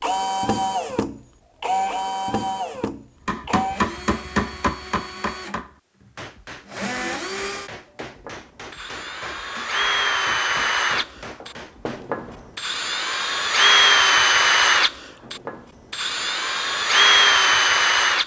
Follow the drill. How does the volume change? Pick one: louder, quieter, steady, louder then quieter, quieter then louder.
quieter then louder.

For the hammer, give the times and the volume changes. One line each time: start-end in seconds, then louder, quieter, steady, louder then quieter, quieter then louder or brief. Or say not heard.
3.2-12.6 quieter.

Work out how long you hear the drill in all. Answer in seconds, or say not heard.
18 s.